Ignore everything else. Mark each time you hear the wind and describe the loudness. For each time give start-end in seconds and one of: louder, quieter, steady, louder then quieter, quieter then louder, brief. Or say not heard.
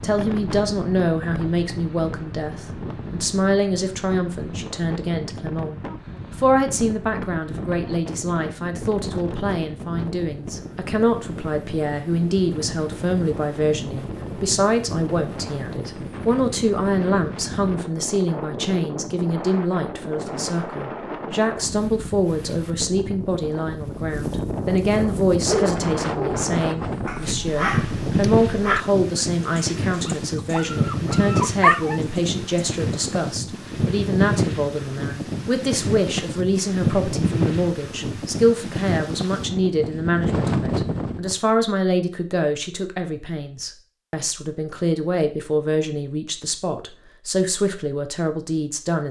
0.0-41.4 louder.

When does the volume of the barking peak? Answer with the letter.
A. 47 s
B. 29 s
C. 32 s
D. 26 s
C.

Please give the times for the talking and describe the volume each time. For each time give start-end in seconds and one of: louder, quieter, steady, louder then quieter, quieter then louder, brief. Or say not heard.
0.0-49.0 steady.